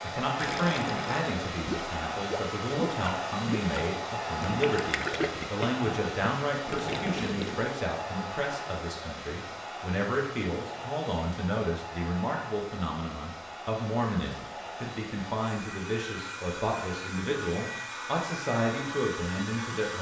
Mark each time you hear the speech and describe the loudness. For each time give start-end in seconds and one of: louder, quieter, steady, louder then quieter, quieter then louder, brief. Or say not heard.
0.0-19.9 steady.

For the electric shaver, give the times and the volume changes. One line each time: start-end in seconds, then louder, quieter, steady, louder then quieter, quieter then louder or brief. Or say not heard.
not heard.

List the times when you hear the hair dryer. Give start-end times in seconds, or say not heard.
0.0-19.9.